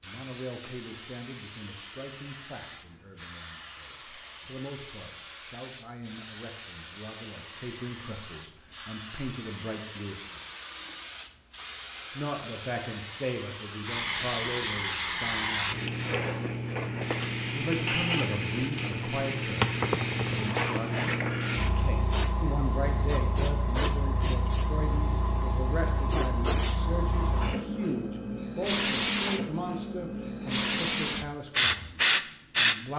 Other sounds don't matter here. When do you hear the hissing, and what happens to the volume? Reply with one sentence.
The hissing can be heard from 0.0 to 32.8 s, getting louder.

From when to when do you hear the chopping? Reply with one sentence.
The chopping can't be heard in this clip.